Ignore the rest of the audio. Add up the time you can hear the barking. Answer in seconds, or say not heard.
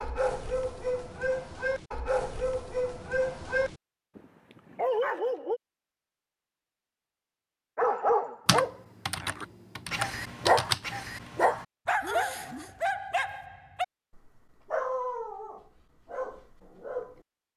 15 s.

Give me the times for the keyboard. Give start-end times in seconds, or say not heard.
8.4-10.9.